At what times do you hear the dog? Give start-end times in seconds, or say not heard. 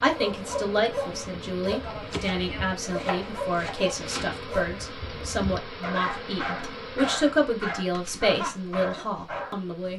0.1-9.8.